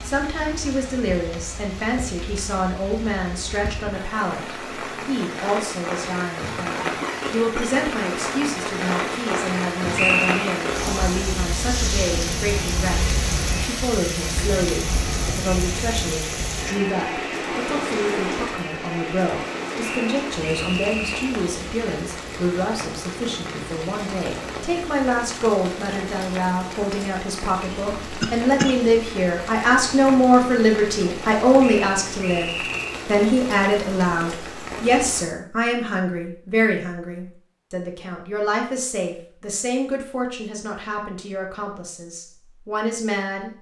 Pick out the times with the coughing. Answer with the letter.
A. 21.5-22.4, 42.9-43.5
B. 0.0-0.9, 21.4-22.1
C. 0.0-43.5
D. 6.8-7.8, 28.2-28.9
D.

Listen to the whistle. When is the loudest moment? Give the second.
10 s.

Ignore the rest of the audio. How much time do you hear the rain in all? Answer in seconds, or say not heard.
35 s.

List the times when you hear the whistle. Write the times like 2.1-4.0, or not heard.
9.9-10.5, 19.8-21.4, 31.6-33.0.